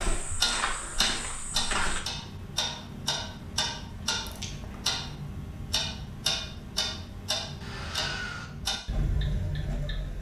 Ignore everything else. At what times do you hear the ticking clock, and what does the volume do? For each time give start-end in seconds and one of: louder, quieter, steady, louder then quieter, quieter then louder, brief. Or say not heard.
0.0-10.1 steady.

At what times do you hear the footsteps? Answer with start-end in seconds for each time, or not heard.
0.0-2.0.